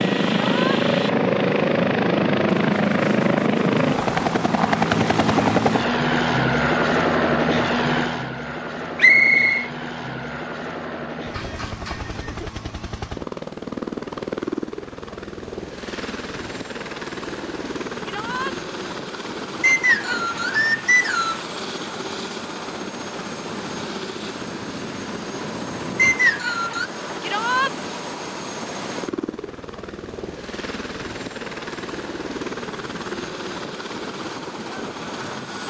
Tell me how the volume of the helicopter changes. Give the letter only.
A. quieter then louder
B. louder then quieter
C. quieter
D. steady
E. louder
C.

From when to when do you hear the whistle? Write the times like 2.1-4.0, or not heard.
8.9-9.7, 19.6-21.4, 25.9-26.9.